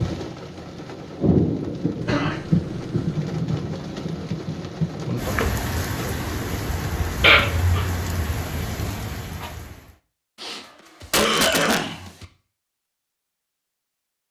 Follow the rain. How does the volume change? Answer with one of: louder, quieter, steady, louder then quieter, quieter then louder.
quieter.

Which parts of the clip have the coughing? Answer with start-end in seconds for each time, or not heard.
2.0-3.1, 7.2-7.8, 10.4-12.2.